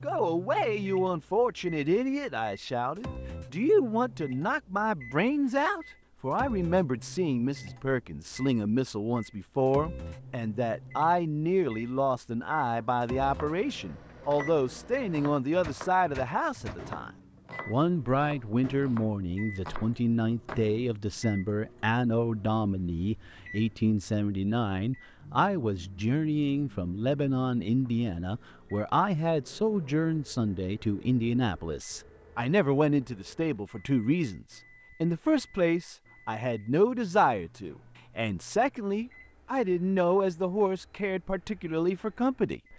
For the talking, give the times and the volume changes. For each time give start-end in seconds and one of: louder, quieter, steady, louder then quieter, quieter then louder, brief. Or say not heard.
0.0-42.7 steady.